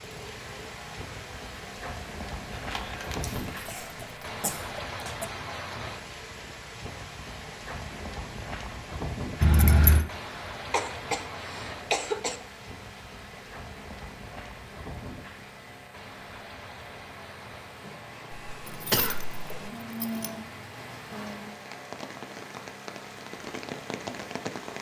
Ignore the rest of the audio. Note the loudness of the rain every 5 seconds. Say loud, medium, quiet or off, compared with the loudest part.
loud, loud, loud, medium, loud.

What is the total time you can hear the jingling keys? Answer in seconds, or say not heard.
4 s.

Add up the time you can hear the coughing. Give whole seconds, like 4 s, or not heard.
5 s.